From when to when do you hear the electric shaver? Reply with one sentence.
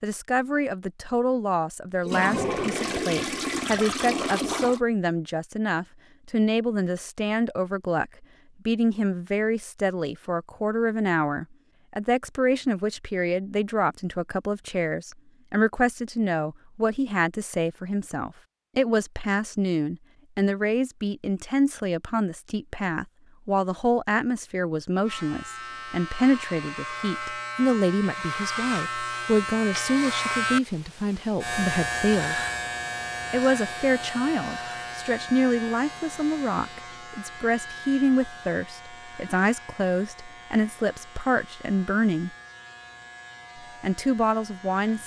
The electric shaver can be heard from 25.0 to 45.0 s.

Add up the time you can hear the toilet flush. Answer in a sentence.
The toilet flush can be heard for 3 seconds in total.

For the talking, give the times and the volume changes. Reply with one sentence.
The talking can be heard from 0.0 to 32.4 s, at a steady volume; from 33.3 to 42.3 s, at a steady volume; and briefly from 43.8 to 45.0 s.